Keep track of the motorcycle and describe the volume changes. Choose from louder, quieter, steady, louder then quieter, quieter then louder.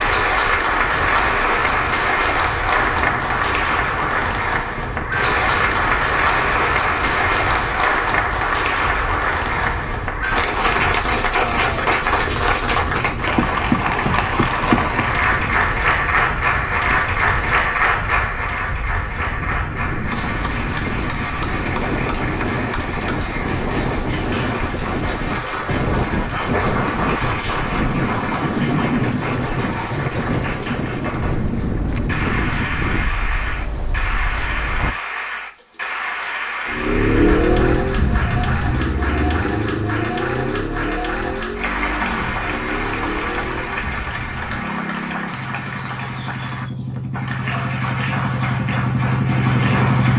quieter then louder.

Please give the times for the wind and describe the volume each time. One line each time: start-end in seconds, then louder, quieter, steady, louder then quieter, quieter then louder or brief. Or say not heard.
0.0-35.0 louder.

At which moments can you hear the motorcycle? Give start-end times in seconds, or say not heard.
36.6-50.1.